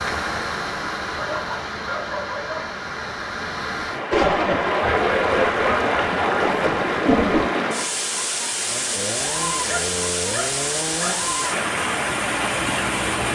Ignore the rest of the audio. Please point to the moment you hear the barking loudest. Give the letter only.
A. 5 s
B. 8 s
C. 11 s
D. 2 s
A.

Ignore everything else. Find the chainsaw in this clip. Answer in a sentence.
The chainsaw can be heard from 8.6 to 13.2 s.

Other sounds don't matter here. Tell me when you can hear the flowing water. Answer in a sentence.
The flowing water can be heard from 0.0 to 13.2 s.